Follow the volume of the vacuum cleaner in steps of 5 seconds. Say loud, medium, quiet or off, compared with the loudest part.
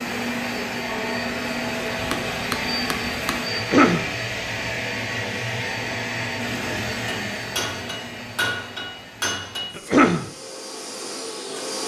loud, loud, medium.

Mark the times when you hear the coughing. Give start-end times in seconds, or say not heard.
3.5-4.1, 9.8-10.3.